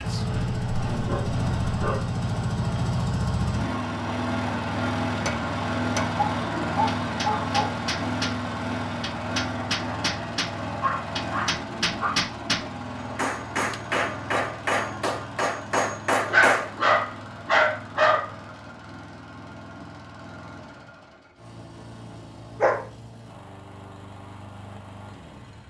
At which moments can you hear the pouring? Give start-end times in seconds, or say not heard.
not heard.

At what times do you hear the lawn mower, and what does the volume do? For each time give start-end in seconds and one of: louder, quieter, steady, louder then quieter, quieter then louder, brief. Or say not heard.
0.0-25.6 quieter.